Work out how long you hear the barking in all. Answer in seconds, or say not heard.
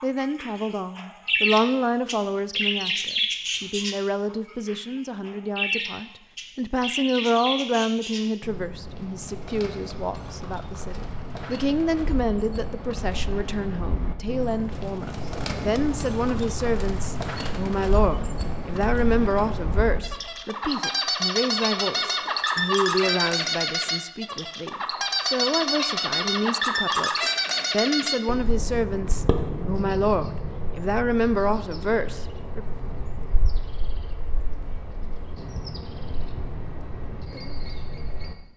not heard.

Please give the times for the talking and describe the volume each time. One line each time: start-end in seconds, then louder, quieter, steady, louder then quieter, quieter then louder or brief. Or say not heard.
0.0-32.6 steady.